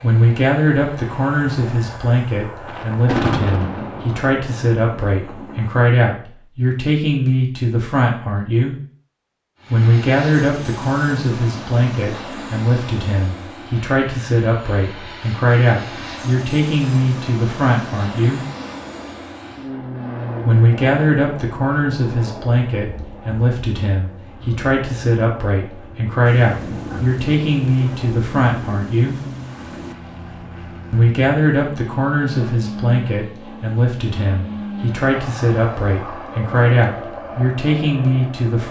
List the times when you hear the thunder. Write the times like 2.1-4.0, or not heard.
2.6-5.7, 26.2-29.9.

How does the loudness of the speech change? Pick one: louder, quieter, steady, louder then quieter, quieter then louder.
steady.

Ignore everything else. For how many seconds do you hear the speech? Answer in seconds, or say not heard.
34 s.